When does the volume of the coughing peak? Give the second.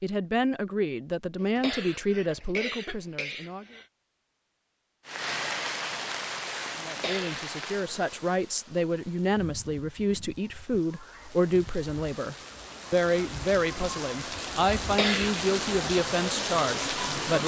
15 s.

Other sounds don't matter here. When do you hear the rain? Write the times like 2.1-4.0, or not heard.
5.0-17.4.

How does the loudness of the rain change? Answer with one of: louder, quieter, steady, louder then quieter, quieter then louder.
quieter then louder.